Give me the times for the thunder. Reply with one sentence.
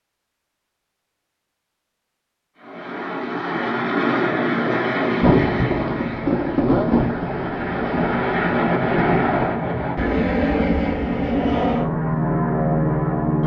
You can hear the thunder from 5.2 to 9.6 s.